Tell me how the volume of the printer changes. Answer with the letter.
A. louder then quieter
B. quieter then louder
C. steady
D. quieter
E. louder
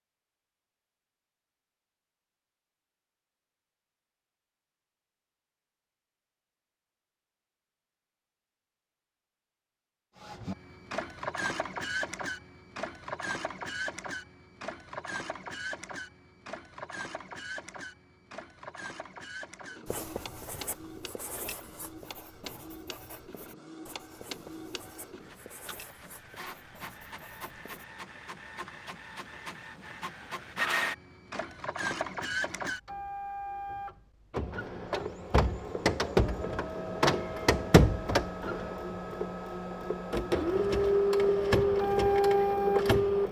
B.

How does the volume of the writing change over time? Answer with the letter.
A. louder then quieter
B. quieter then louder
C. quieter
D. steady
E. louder
C.